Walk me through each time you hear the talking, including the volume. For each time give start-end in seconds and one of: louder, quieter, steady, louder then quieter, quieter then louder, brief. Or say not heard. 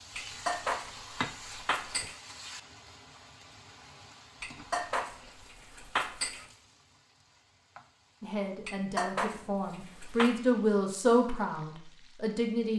8.2-12.7 louder then quieter.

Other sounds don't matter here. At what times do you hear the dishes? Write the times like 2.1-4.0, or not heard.
0.1-2.1, 4.4-6.5, 8.7-10.3.